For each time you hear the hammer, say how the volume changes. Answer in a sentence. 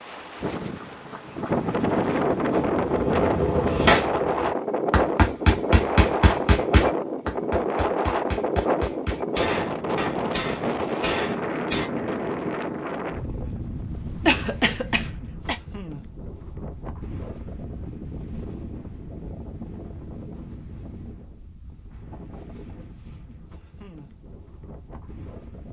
You can hear the hammer from 2.5 to 11.9 s, getting quieter.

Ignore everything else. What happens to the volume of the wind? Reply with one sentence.
The volume of the wind goes down.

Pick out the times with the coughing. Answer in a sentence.
The coughing can be heard from 14.2 to 15.6 s.